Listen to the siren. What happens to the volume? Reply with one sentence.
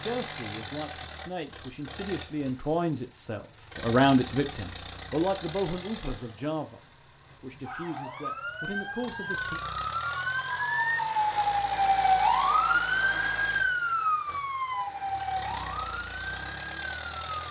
The volume of the siren goes up, then down.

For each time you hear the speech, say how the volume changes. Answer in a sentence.
You can hear the speech from 0.0 to 6.8 s, getting louder then quieter; and briefly from 7.4 to 9.6 s.